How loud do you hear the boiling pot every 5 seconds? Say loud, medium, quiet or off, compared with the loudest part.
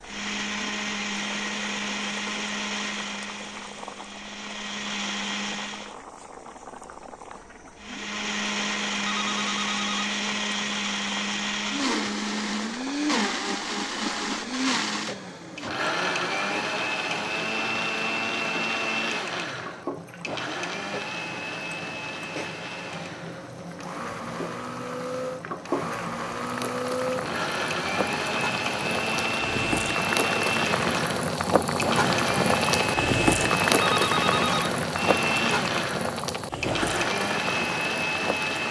quiet, quiet, quiet, quiet, quiet, medium, loud, medium.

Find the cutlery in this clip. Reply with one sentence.
You can't hear the cutlery here.